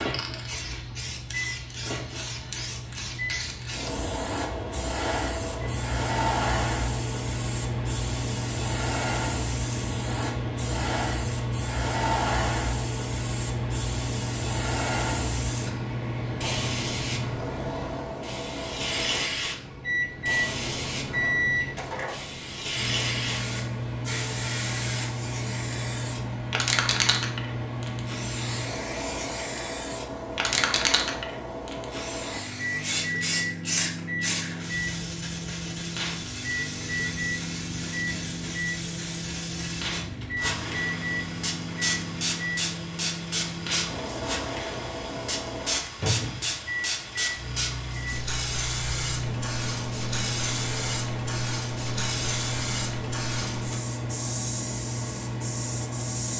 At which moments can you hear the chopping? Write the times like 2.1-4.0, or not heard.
not heard.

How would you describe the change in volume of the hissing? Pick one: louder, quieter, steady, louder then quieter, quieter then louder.
steady.